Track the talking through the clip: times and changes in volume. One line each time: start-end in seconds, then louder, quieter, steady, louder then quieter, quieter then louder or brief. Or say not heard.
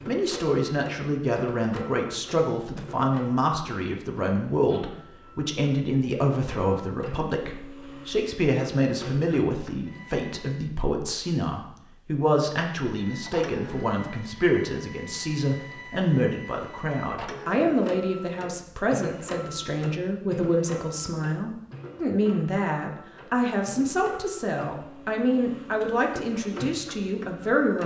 0.1-27.8 steady.